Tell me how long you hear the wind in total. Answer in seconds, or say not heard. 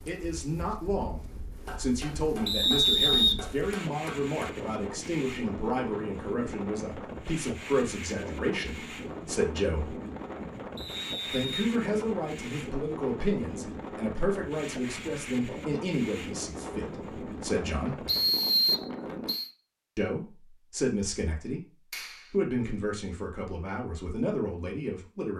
19 s.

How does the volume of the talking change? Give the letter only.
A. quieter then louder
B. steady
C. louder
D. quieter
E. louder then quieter
B.